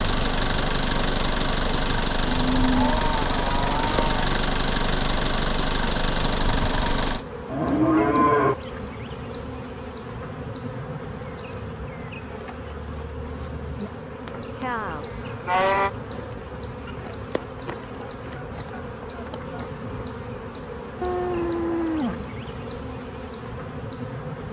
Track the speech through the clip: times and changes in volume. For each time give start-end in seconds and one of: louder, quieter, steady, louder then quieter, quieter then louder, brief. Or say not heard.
not heard.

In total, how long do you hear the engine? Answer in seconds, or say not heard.
7 s.